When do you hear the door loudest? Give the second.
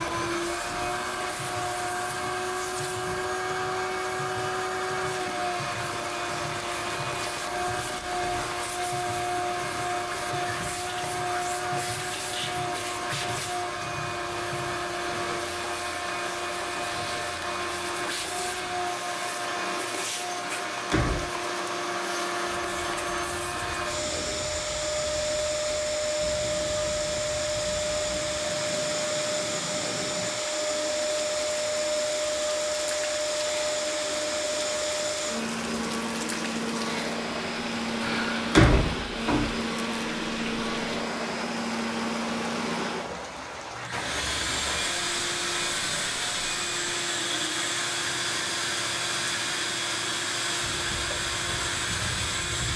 39 s.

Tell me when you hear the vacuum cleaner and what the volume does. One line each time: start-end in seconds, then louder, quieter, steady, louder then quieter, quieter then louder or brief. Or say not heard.
0.0-52.7 steady.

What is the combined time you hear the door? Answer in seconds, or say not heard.
2 s.